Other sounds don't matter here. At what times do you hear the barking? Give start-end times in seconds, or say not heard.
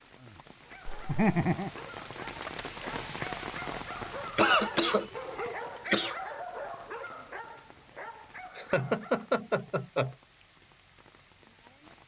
0.6-9.3.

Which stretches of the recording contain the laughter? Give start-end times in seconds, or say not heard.
0.8-1.7, 4.3-6.2, 8.6-10.2.